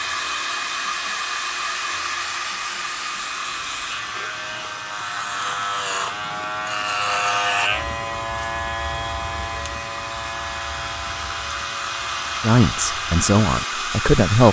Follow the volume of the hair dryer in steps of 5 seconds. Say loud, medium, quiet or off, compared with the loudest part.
loud, medium, loud.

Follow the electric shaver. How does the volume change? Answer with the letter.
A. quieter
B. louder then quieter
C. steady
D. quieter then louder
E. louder
B.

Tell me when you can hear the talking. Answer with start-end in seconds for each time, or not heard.
12.4-14.4.